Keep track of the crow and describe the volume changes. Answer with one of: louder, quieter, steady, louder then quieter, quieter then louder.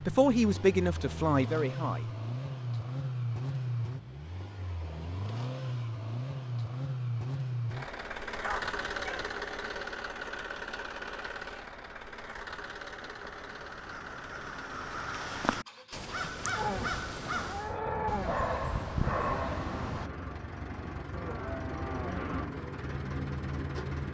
louder.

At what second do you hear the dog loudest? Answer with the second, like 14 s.
19 s.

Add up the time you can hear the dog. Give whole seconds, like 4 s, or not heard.
3 s.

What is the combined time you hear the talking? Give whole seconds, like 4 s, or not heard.
2 s.